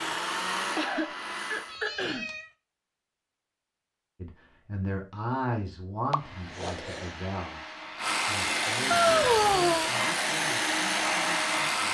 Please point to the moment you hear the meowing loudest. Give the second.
9 s.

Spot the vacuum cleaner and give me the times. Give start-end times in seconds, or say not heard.
0.0-1.8, 6.0-11.8.